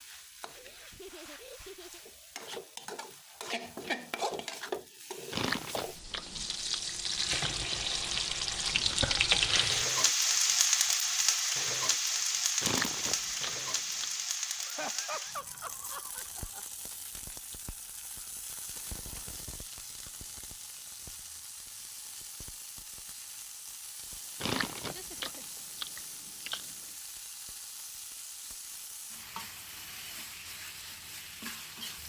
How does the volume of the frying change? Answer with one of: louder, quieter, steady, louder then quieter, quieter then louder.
louder then quieter.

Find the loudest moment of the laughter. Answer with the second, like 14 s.
15 s.